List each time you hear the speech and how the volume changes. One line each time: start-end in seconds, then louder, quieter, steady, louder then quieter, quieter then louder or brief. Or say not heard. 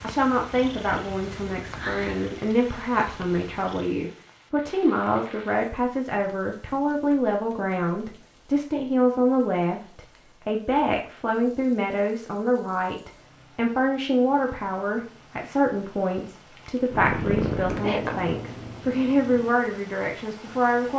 0.0-20.9 steady.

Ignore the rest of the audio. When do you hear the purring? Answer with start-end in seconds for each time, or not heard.
0.0-3.9, 16.9-19.6.